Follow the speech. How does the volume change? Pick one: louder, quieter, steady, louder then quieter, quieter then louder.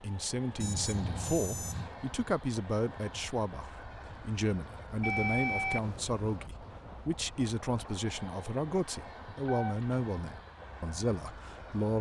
steady.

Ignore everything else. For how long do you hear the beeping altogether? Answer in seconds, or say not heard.
3 s.